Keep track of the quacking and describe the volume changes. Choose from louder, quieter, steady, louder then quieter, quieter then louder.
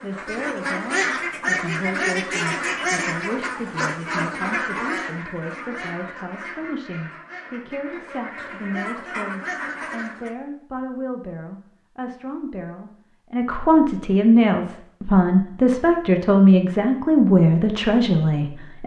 quieter then louder.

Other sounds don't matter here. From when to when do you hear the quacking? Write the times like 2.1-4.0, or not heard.
0.0-10.3.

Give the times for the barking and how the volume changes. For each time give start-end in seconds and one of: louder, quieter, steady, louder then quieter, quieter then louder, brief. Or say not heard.
not heard.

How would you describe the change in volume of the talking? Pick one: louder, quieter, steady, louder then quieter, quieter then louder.
louder.